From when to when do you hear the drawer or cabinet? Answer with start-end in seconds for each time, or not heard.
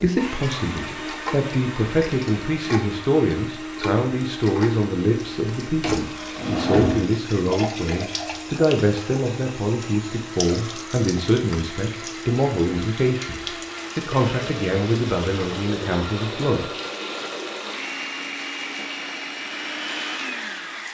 5.8-7.0.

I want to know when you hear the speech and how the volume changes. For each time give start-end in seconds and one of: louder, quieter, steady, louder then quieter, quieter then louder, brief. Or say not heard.
0.0-16.6 steady.